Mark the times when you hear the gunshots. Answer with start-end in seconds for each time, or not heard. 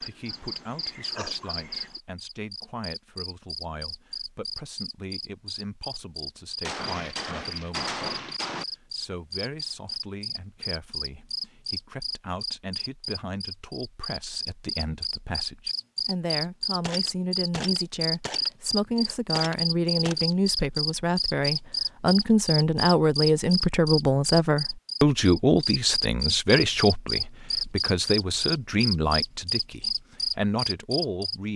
6.6-8.7, 16.8-20.4.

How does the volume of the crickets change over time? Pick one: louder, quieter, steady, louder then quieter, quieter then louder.
louder.